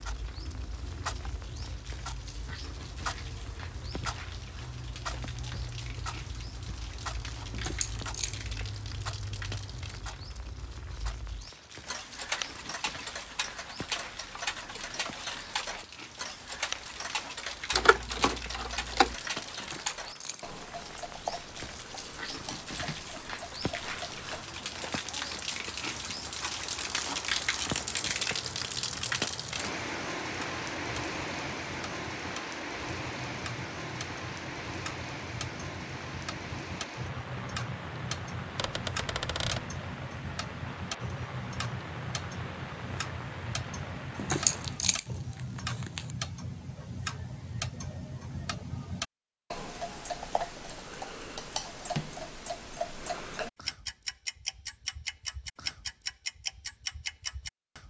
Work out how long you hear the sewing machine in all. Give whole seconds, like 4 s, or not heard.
not heard.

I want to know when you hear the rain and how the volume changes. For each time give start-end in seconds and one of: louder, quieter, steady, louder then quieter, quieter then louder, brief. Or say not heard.
0.0-45.0 louder then quieter.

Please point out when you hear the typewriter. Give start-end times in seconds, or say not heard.
17.7-19.1, 38.5-39.6.